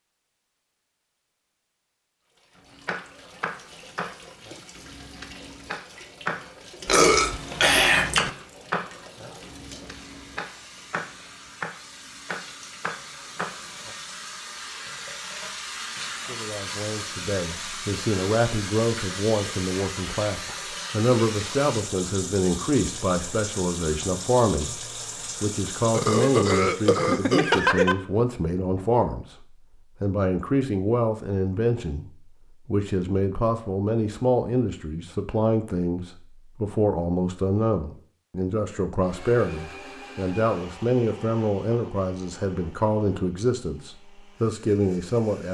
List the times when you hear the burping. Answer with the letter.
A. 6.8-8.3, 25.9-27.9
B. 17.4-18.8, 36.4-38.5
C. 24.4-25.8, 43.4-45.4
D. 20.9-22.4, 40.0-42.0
A.